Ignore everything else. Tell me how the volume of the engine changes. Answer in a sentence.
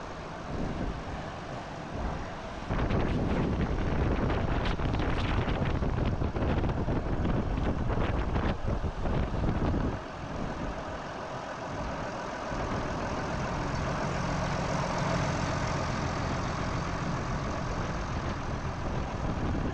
The loudness of the engine goes up.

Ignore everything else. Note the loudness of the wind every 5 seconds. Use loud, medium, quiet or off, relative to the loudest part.
loud, loud, medium, medium.